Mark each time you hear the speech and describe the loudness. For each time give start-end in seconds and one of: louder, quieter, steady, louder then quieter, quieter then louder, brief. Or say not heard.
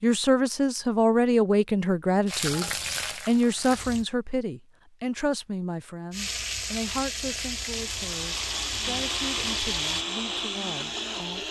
0.0-11.4 quieter.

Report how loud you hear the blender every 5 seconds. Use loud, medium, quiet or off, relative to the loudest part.
off, loud, loud.